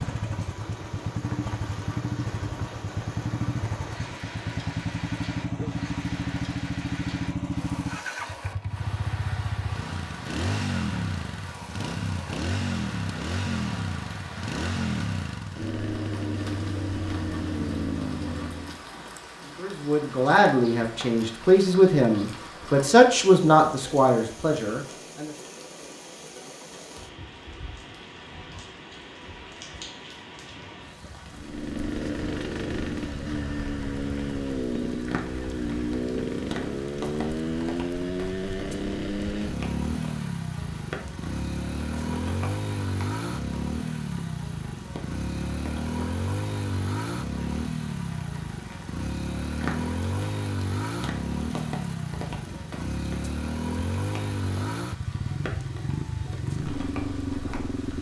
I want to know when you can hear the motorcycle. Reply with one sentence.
You can hear the motorcycle from 0.0 to 18.9 s and from 31.3 to 57.9 s.